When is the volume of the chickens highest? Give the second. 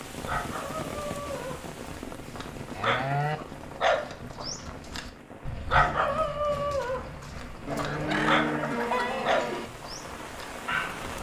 9 s.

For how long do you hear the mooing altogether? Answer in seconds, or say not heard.
3 s.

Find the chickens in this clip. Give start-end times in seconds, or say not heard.
7.7-9.2.